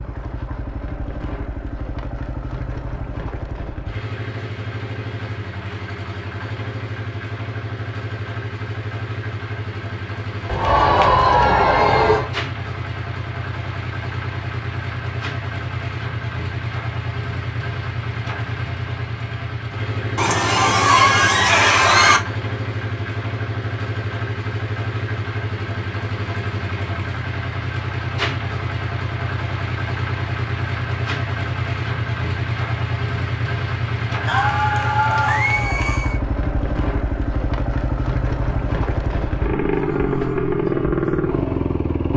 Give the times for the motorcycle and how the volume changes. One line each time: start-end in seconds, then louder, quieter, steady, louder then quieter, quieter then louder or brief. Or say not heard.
0.0-42.1 louder.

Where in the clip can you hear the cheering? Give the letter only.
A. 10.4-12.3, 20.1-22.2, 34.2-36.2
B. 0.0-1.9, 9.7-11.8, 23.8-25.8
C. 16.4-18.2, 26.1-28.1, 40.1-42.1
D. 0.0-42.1
A.